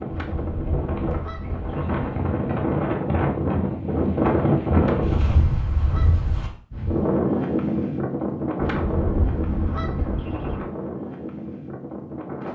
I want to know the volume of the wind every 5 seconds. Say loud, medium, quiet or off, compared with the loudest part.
loud, loud, medium.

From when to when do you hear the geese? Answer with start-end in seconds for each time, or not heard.
0.1-1.9, 4.8-6.6, 8.6-10.6.